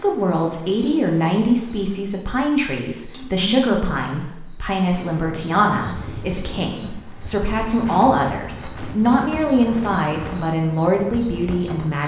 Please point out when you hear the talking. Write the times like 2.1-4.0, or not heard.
0.0-12.0.